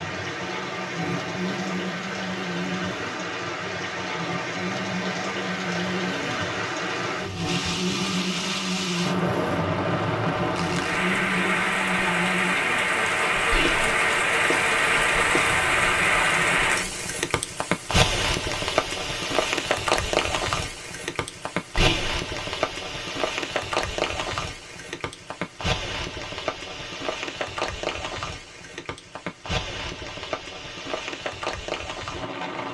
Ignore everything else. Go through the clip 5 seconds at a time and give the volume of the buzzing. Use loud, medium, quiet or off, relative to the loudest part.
loud, loud, loud, medium, off, off, off.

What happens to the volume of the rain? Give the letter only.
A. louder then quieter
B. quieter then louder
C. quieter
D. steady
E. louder
A.